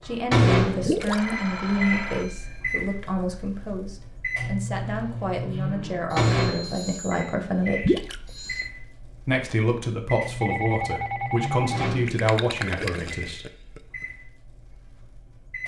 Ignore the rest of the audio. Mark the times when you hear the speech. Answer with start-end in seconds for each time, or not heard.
0.1-8.0, 9.2-13.4.